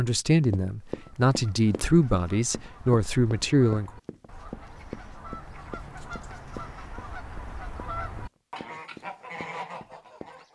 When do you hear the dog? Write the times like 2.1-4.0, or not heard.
not heard.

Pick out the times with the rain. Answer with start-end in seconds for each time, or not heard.
not heard.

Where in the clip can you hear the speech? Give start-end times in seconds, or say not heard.
0.0-3.9.